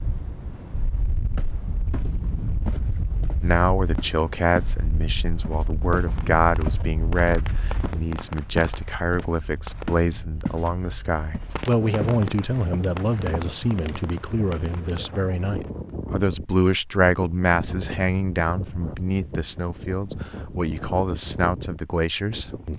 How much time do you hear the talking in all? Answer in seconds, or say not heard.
19 s.